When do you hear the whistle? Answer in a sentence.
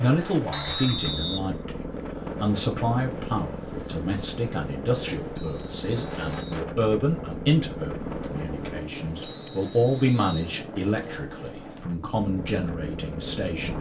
The whistle can be heard from 0.5 to 1.4 s, from 5.3 to 6.7 s and from 9.2 to 10.5 s.